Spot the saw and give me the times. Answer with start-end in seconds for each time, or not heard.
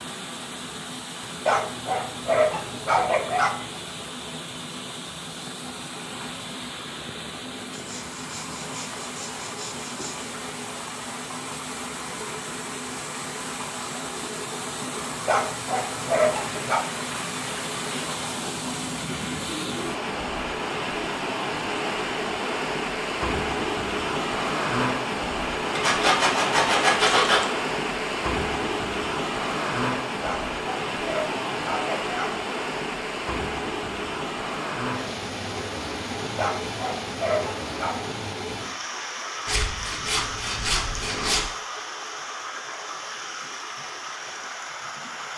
7.7-10.3, 25.8-27.4, 39.5-41.5.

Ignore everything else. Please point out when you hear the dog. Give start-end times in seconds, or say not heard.
1.4-3.6, 15.2-16.9, 30.2-32.3, 36.4-38.0.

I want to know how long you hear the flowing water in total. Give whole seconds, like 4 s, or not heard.
45 s.